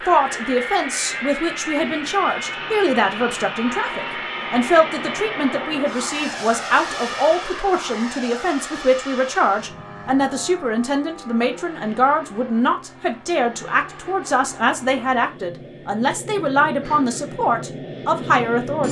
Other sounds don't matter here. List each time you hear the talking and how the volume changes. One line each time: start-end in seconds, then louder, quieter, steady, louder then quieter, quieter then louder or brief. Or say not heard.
0.1-18.8 steady.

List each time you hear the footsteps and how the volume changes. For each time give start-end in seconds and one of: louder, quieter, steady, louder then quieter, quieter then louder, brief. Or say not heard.
not heard.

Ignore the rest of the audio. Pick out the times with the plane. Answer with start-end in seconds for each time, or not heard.
0.0-18.8.